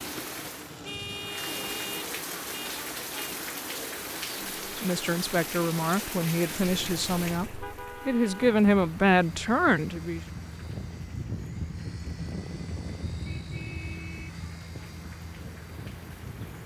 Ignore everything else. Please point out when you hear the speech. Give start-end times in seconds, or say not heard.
4.3-10.2.